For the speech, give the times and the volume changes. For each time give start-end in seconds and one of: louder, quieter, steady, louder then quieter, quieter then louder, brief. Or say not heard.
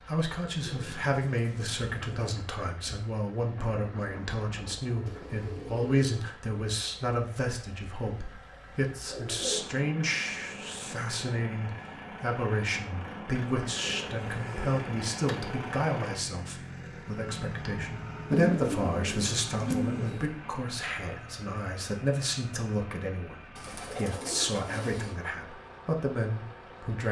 0.1-27.0 steady.